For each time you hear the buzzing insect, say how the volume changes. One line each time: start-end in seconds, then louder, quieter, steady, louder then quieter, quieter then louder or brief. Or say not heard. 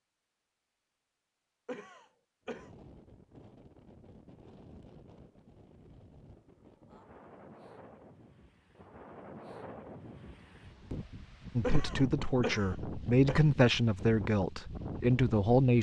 not heard.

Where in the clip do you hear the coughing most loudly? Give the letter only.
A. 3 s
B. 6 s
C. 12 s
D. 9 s
C.